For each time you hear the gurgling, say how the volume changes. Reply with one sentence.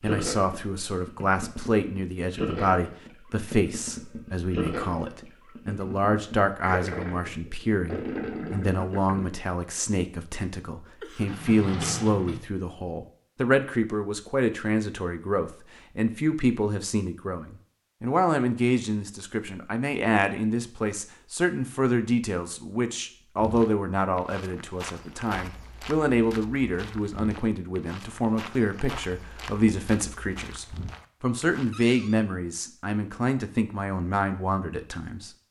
You can hear the gurgling from 0.0 to 9.2 s, getting louder.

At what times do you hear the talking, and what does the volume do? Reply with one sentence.
The talking can be heard from 0.0 to 35.3 s, at a steady volume.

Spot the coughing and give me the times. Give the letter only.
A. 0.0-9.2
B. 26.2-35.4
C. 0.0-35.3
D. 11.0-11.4
D.